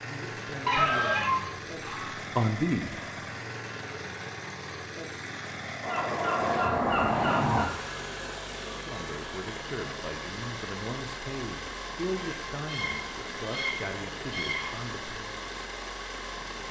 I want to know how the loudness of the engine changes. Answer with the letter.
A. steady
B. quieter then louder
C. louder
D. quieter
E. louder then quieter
A.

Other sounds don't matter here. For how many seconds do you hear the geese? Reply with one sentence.
The geese can be heard for 6 seconds in total.